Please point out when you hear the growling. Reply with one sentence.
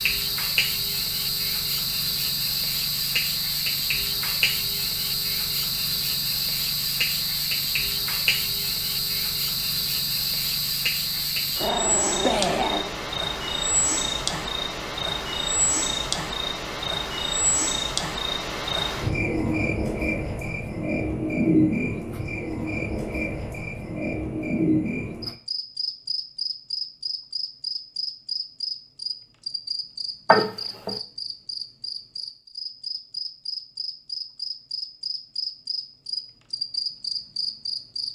The growling can be heard from 11.2 to 13.0 s and from 30.2 to 31.0 s.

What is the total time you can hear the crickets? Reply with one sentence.
You can hear the crickets for 38 seconds altogether.